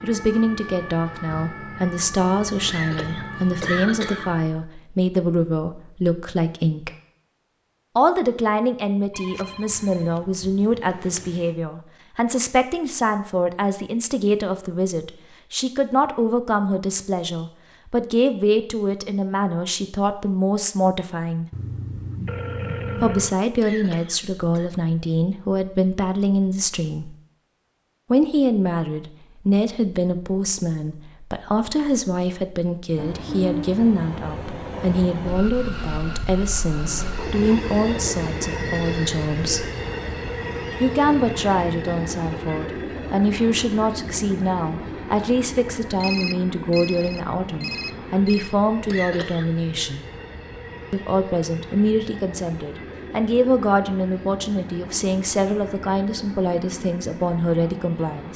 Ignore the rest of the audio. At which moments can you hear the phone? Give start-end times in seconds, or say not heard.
9.1-11.6, 21.5-23.4, 46.0-48.5.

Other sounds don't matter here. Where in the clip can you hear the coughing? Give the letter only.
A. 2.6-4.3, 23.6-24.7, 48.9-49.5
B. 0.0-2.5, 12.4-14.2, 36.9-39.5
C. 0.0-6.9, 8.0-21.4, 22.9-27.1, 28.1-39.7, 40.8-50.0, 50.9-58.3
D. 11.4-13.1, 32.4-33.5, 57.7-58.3
A.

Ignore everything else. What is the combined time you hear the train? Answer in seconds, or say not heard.
25 s.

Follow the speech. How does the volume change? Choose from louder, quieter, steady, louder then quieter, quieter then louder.
steady.